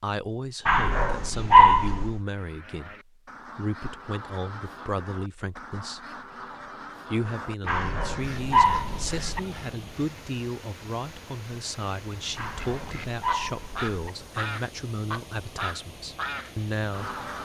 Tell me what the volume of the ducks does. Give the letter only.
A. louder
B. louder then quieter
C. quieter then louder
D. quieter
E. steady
A.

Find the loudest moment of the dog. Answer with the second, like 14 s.
2 s.